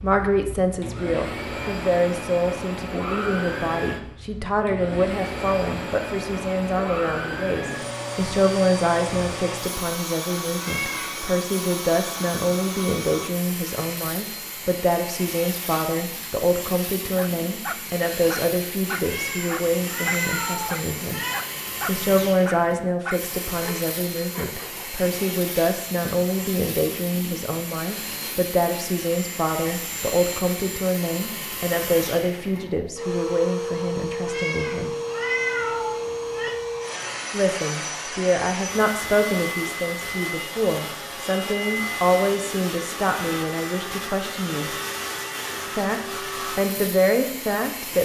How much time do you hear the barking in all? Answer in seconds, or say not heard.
8 s.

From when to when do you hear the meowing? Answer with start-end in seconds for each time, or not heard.
10.6-11.2, 19.0-21.4, 34.2-36.5.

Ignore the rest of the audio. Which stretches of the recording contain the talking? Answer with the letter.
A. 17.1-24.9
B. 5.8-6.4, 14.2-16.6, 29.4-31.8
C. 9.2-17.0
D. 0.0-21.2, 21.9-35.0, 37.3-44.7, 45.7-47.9
D.